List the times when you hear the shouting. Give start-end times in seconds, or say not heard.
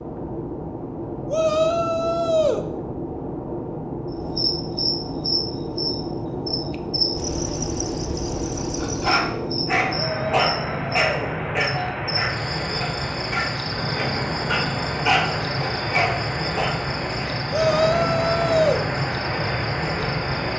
1.2-2.6, 9.9-11.9, 17.5-18.8.